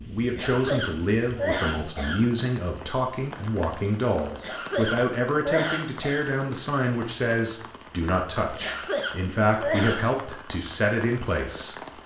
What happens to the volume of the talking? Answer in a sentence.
The loudness of the talking stays about the same.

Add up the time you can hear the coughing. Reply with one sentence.
You can hear the coughing for 5 seconds altogether.